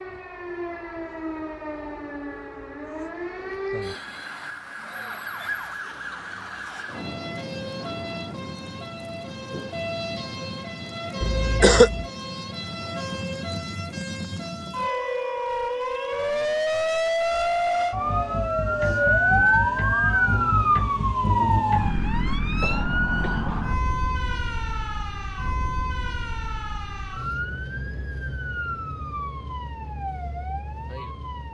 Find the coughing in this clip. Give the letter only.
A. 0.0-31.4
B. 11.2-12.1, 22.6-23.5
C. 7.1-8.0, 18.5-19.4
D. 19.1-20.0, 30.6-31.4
B.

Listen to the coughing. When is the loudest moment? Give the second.
12 s.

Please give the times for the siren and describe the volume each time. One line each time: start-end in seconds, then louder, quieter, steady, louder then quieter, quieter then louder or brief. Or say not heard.
0.0-31.4 louder then quieter.